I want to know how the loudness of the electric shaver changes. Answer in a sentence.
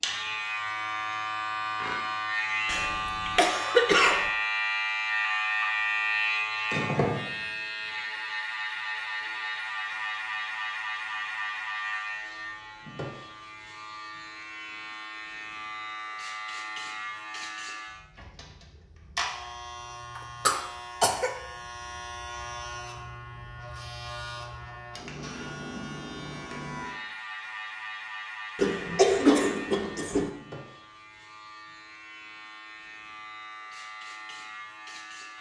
The volume of the electric shaver goes down.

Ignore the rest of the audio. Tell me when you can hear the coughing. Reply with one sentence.
You can hear the coughing from 2.6 to 4.3 s, from 20.1 to 21.3 s and from 28.6 to 30.3 s.